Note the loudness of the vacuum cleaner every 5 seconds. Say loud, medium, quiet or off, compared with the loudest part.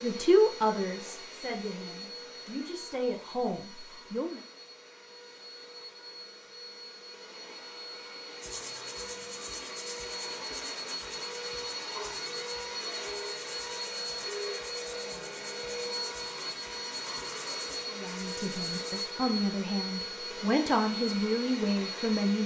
medium, medium, loud, loud, loud.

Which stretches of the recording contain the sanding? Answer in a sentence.
The sanding can be heard from 8.4 to 19.1 s.